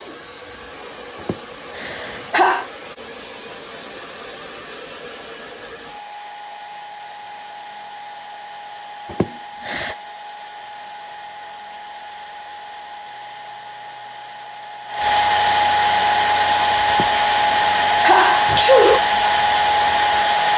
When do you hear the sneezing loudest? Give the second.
19 s.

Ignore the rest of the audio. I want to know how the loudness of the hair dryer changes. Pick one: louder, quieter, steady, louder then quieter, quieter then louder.
louder.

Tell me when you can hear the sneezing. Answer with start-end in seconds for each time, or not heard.
1.2-2.6, 9.1-9.9, 16.9-19.0.